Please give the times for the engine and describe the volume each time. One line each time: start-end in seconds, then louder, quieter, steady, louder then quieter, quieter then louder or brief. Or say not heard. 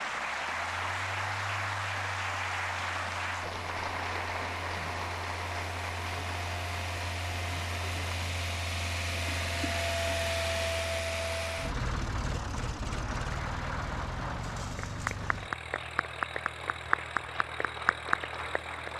0.0-18.9 louder then quieter.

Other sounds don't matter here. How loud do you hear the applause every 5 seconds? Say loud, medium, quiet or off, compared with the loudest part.
loud, medium, medium, loud.